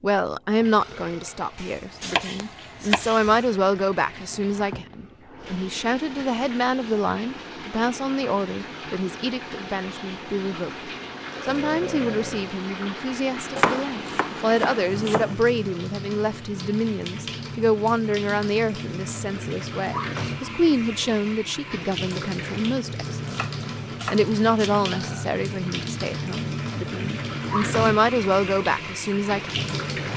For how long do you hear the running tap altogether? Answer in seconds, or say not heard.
30 s.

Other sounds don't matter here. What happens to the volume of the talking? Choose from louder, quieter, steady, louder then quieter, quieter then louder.
steady.